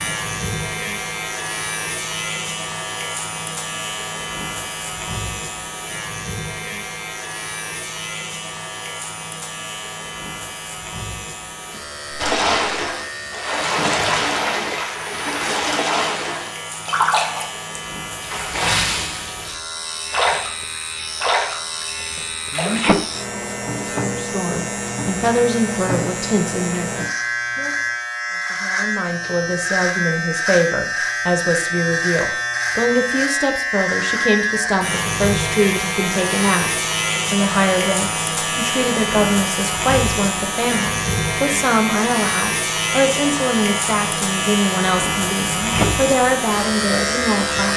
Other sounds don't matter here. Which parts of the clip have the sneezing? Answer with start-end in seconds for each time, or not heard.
12.1-12.7, 22.5-23.0, 45.5-46.0.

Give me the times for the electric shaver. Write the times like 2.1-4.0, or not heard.
0.0-47.7.